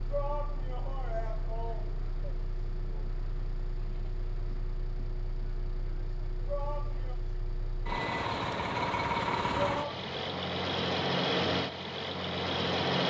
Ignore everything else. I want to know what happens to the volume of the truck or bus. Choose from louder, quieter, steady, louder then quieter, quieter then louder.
louder.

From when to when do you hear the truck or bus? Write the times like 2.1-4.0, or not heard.
0.0-13.0.